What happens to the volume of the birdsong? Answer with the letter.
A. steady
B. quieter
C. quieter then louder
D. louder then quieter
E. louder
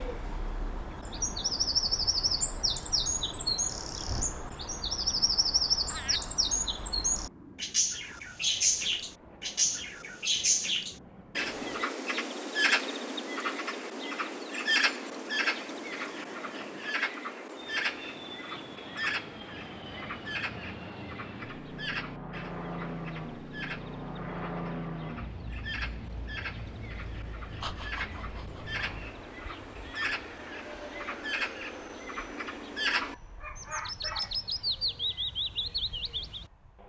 C.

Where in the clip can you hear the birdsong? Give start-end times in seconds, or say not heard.
0.0-36.5.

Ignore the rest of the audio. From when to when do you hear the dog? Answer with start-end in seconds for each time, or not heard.
33.0-34.4.